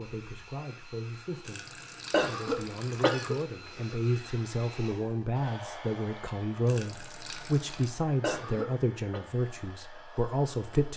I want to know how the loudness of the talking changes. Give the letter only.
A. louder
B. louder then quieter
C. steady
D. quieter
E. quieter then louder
A.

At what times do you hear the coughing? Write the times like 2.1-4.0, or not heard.
2.1-4.0, 8.2-9.2.